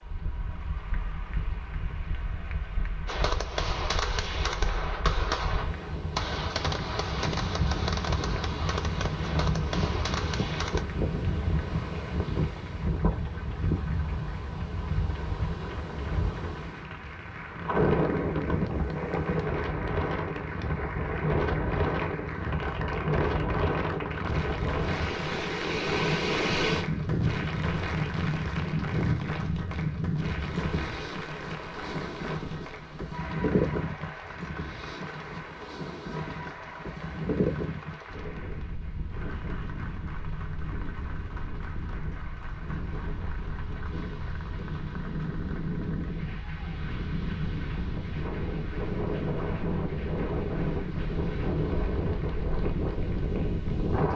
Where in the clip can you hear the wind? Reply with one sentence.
You can hear the wind from 0.0 to 54.1 s.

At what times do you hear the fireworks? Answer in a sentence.
The fireworks can be heard from 3.0 to 10.8 s.